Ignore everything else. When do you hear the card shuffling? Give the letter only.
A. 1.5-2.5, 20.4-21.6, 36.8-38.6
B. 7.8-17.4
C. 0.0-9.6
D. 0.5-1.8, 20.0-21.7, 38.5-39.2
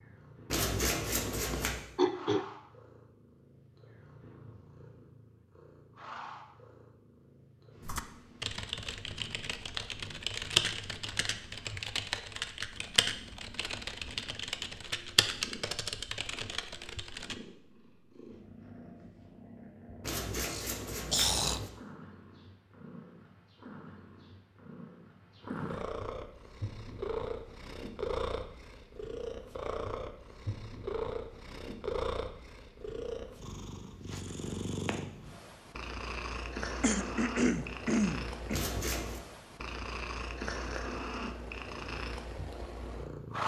D.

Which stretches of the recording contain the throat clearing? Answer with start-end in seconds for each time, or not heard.
1.5-2.5, 20.4-21.6, 36.8-38.6.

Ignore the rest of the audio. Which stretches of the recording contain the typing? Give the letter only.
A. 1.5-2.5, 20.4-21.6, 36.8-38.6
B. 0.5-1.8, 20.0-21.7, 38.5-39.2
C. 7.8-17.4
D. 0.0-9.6
C.